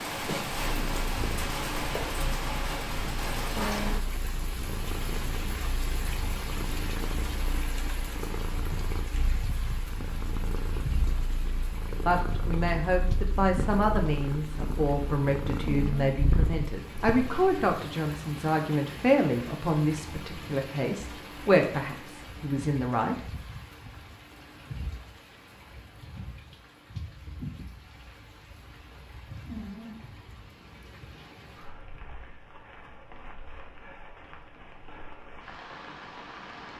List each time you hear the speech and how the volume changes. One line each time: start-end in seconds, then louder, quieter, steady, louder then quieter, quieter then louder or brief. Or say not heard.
12.1-23.1 steady.